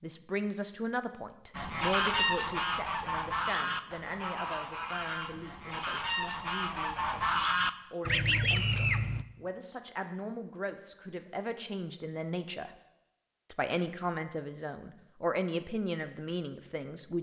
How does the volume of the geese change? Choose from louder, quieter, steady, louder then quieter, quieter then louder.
quieter then louder.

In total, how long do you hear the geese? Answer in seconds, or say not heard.
8 s.